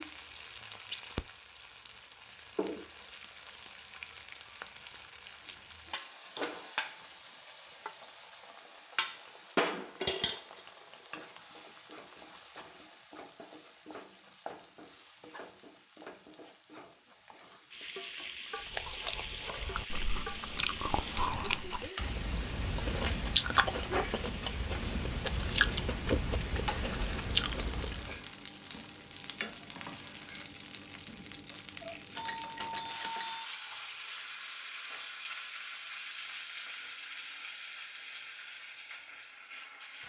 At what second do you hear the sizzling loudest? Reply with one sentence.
The volume of the sizzling peaks at 10 seconds.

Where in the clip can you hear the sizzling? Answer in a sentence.
You can hear the sizzling from 0.0 to 40.0 s.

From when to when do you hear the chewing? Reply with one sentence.
The chewing can be heard from 18.6 to 28.2 s.